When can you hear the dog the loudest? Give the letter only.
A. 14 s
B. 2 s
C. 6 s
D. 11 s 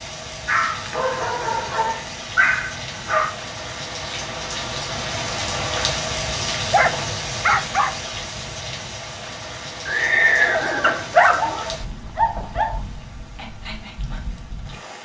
D.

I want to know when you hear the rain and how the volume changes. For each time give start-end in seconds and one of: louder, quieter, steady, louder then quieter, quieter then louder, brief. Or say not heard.
0.0-15.0 louder then quieter.